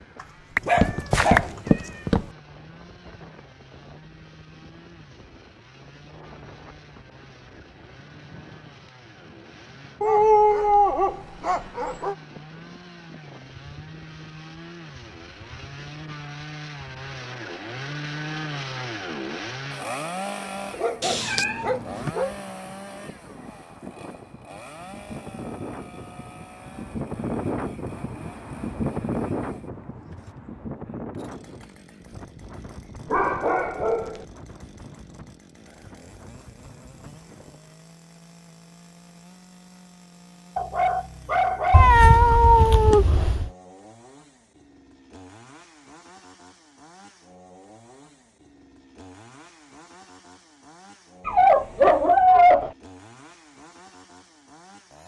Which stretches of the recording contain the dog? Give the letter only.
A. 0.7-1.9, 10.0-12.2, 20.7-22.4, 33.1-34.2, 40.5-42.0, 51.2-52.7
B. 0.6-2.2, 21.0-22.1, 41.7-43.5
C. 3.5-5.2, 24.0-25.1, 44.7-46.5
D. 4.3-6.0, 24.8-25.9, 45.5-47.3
A.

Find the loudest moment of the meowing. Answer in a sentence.
The loudest moment of the meowing is at 42 seconds.